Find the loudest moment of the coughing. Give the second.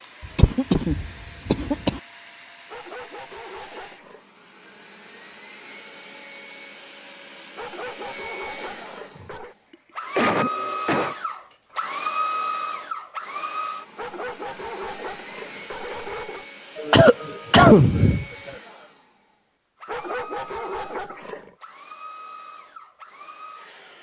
18 s.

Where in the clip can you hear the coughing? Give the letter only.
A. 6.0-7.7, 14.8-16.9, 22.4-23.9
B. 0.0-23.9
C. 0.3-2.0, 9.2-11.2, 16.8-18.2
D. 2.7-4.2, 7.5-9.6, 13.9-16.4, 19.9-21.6
C.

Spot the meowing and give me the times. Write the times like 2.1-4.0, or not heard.
not heard.